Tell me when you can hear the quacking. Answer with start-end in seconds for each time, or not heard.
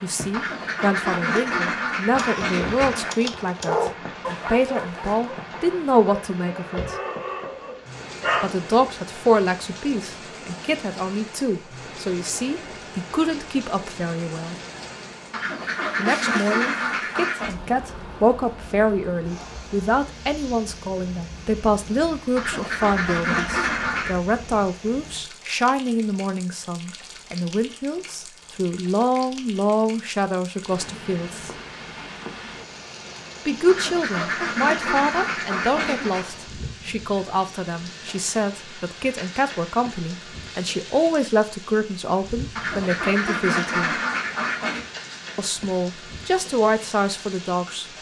0.3-3.1, 15.3-17.5, 22.4-24.2, 33.6-36.2, 42.5-44.9.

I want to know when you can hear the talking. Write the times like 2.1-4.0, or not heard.
0.0-7.0, 8.4-14.6, 15.9-31.5, 33.5-44.0, 45.4-47.9.